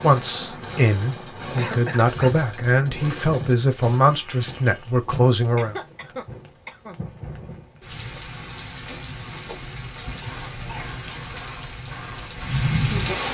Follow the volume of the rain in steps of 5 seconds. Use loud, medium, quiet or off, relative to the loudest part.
medium, medium, loud.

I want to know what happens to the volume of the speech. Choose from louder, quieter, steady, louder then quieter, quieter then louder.
steady.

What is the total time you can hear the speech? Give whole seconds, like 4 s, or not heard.
6 s.